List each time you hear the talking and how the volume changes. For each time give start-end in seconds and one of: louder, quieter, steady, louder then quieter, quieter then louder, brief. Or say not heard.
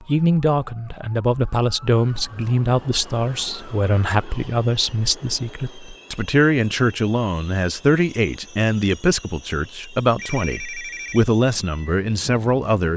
0.1-12.9 steady.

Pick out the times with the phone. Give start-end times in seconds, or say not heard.
10.2-11.2.